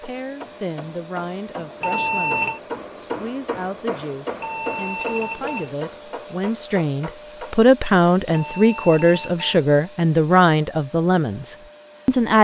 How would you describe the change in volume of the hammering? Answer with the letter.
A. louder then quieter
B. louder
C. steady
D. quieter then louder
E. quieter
A.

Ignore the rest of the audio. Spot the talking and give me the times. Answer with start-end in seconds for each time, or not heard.
0.0-12.3.